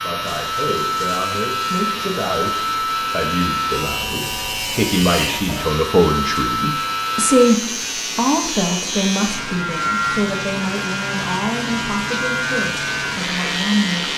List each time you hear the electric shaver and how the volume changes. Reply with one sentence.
The electric shaver can be heard from 0.0 to 14.1 s, at a steady volume.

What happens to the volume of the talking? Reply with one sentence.
The volume of the talking goes up, then down.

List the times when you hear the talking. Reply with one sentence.
The talking can be heard from 0.0 to 14.1 s.